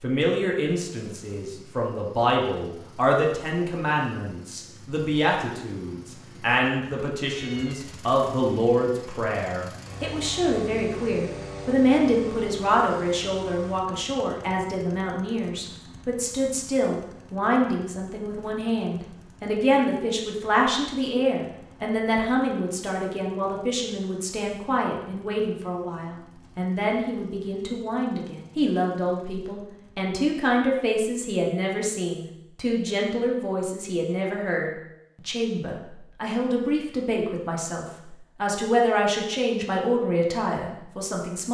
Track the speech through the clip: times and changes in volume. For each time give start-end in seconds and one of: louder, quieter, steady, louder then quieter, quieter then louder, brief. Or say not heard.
0.0-41.4 steady.